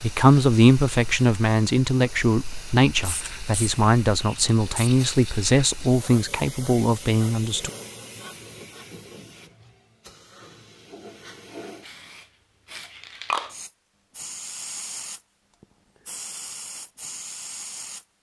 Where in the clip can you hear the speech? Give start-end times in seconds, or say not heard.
0.0-7.7.